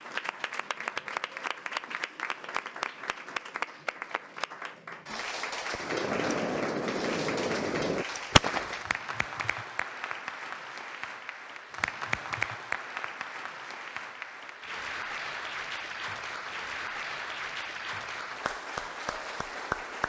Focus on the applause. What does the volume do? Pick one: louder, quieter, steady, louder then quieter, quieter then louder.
steady.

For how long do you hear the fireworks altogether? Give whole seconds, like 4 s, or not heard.
3 s.